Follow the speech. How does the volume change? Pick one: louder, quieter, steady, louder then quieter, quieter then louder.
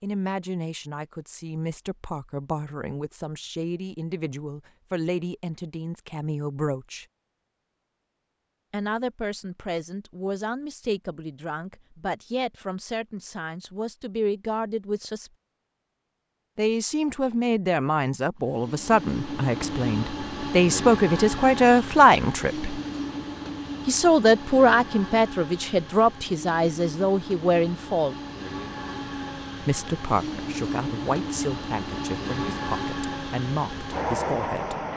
louder then quieter.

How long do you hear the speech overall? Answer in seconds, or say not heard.
29 s.